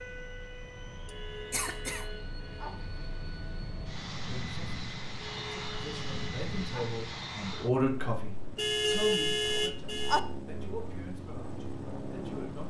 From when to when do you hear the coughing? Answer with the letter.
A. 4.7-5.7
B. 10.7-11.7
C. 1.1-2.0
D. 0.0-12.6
C.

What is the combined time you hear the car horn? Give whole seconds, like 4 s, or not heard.
5 s.